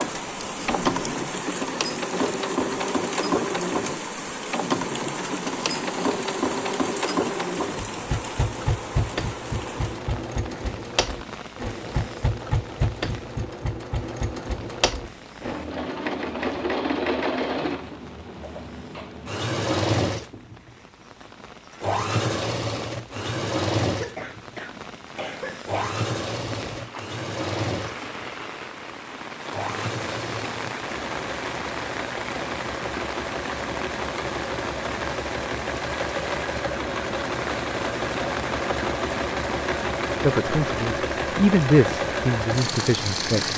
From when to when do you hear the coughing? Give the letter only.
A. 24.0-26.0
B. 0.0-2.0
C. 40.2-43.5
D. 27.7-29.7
A.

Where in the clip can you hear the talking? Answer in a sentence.
The talking can be heard from 40.2 to 43.5 s.